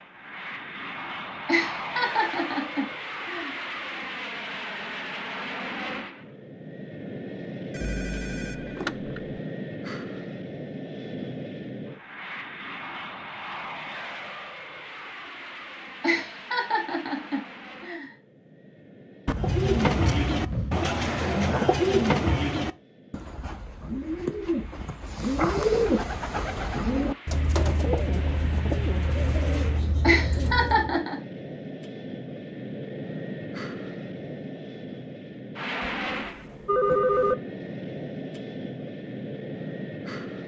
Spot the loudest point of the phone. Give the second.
37 s.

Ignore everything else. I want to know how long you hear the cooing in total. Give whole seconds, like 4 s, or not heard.
12 s.